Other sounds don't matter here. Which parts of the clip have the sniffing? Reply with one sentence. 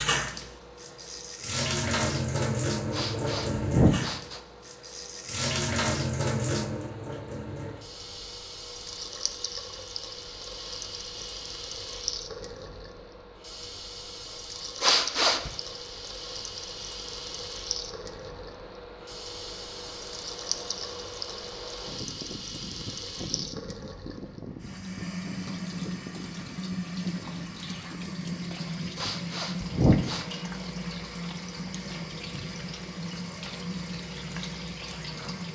The sniffing can be heard from 2.9 to 4.4 s, from 14.8 to 15.5 s and from 28.9 to 30.2 s.